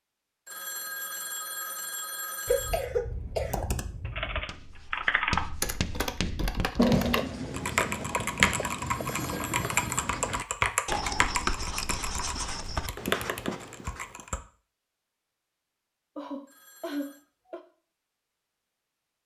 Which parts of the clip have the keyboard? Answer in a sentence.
The keyboard can be heard from 3.2 to 14.4 s.